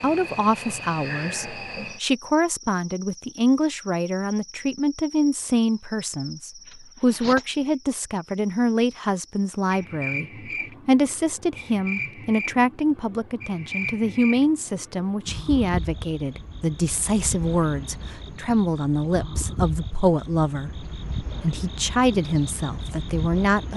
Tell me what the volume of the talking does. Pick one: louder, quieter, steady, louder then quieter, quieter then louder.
steady.